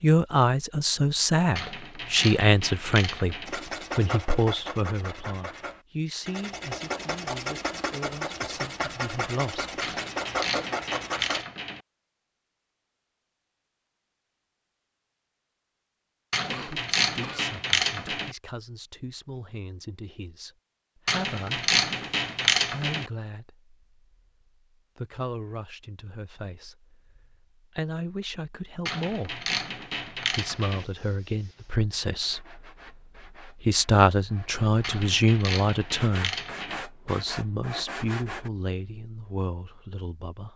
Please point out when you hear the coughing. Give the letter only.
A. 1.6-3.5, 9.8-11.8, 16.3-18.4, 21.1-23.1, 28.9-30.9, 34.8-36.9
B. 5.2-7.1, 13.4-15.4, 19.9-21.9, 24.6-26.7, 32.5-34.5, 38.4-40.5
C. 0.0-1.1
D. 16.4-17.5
D.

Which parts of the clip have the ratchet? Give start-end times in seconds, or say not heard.
1.6-3.5, 9.8-11.8, 16.3-18.4, 21.1-23.1, 28.9-30.9, 34.8-36.9.